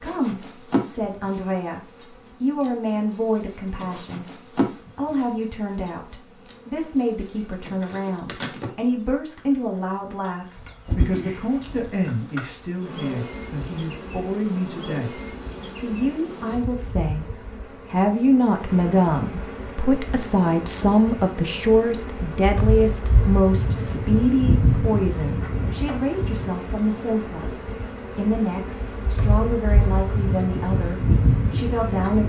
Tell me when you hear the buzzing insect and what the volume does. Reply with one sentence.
You can hear the buzzing insect from 0.0 to 32.2 s, getting louder.